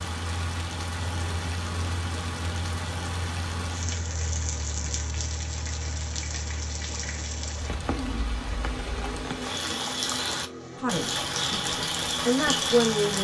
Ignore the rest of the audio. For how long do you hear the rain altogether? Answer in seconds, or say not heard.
13 s.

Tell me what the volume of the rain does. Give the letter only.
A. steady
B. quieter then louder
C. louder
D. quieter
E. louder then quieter
C.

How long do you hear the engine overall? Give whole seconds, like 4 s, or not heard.
13 s.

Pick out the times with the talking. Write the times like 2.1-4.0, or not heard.
10.8-11.6, 12.2-13.1.